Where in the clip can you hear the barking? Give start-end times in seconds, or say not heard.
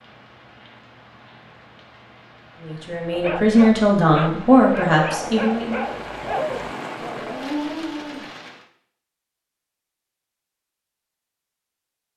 3.1-8.3.